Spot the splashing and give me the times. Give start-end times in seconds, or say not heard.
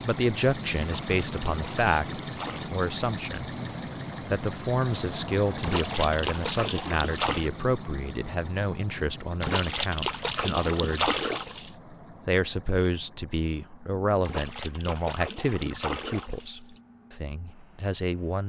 0.8-2.7, 5.6-7.5, 9.4-11.7, 14.2-16.8.